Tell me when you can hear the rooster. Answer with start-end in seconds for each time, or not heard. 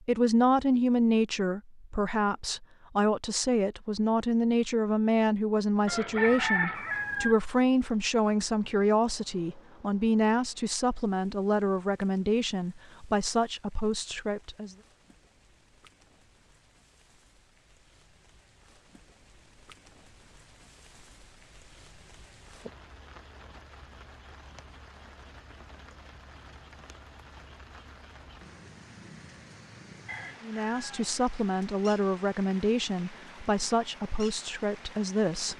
5.8-7.3, 30.1-31.1.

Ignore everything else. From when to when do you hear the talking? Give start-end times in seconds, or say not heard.
0.1-14.8, 30.4-35.5.